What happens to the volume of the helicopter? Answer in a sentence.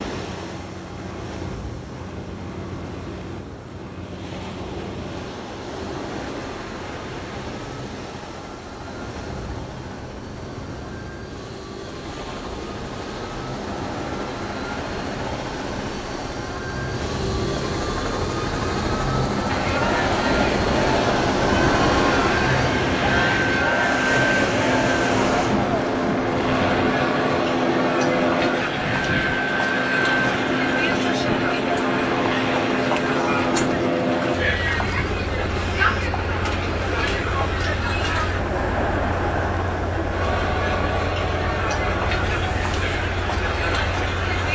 The loudness of the helicopter goes up, then down.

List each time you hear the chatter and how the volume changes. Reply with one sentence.
You can hear the chatter from 19.4 to 44.5 s, at a steady volume.